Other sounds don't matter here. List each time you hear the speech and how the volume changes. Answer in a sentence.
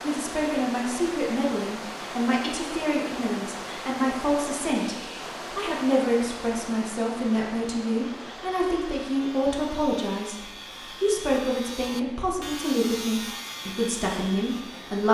The speech can be heard from 0.0 to 15.1 s, at a steady volume.